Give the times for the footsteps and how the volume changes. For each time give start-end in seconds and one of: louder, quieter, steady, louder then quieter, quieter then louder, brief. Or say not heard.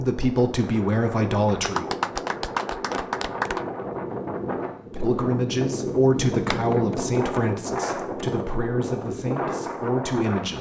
not heard.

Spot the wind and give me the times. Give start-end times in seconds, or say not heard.
0.0-10.5.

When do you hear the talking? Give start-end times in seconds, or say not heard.
0.0-1.9, 4.9-10.5.